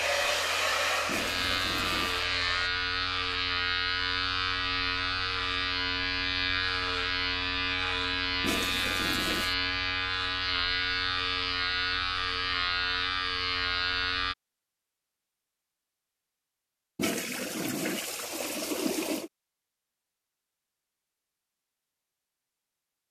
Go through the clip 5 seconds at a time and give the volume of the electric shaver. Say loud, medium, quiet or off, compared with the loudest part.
loud, loud, loud, off, off.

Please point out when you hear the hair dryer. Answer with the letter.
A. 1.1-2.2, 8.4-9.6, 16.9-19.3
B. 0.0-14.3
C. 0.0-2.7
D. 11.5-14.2
C.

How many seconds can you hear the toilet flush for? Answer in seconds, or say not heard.
5 s.